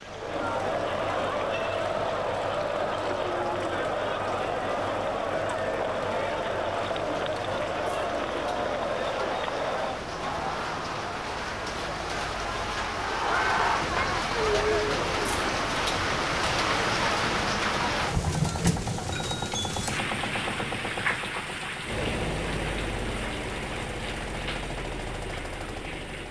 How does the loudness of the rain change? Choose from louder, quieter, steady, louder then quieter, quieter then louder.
louder then quieter.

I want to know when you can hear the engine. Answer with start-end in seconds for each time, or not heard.
0.0-26.2.